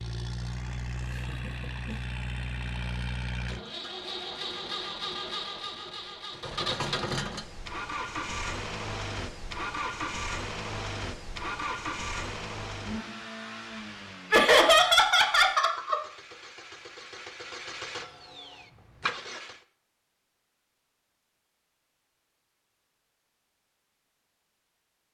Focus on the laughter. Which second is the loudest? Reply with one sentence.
The volume of the laughter peaks at 15 seconds.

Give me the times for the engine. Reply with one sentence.
The engine can be heard from 0.0 to 19.6 s.